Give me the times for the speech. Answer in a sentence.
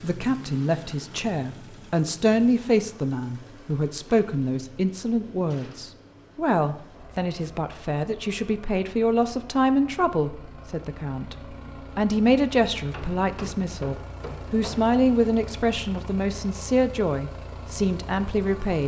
You can hear the speech from 0.0 to 18.8 s.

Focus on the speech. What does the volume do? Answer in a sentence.
The loudness of the speech stays about the same.